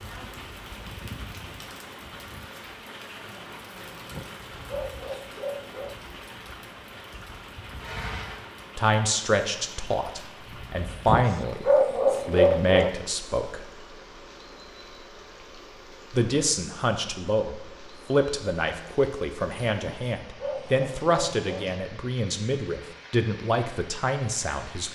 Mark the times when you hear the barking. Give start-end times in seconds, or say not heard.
4.1-6.0, 11.1-12.9, 19.8-21.6.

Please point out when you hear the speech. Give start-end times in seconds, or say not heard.
8.8-13.6, 16.1-24.8.